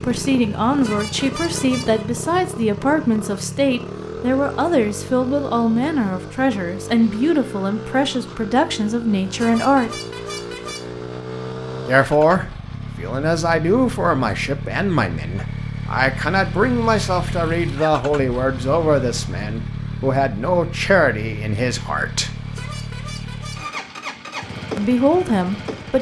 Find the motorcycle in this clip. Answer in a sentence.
You can hear the motorcycle from 0.0 to 25.9 s.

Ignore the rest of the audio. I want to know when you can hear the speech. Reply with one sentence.
The speech can be heard from 0.0 to 9.9 s, from 11.8 to 22.4 s and from 24.8 to 25.9 s.